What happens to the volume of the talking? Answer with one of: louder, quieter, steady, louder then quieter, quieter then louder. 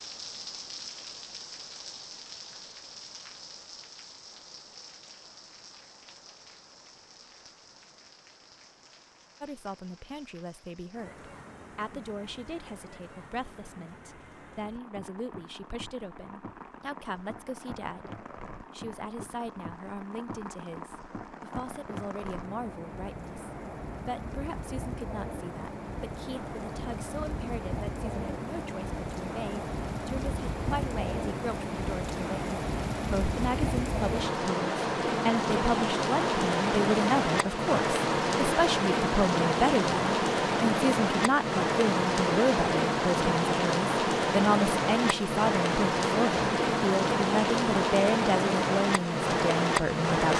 louder.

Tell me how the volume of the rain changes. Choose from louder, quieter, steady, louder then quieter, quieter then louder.
louder.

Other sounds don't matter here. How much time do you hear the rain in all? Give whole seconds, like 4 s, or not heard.
50 s.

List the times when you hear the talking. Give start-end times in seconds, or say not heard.
9.4-50.3.